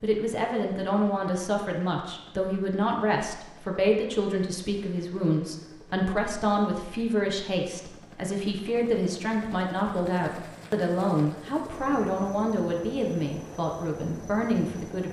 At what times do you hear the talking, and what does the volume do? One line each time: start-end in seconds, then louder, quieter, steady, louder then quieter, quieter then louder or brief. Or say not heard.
0.0-15.0 steady.